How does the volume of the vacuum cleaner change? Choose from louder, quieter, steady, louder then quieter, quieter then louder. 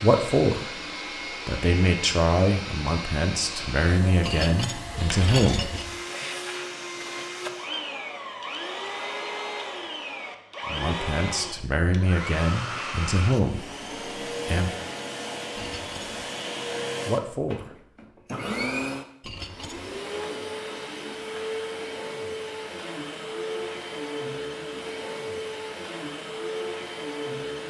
steady.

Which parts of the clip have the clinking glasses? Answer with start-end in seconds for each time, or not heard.
4.2-6.0, 15.6-16.0, 19.2-19.9.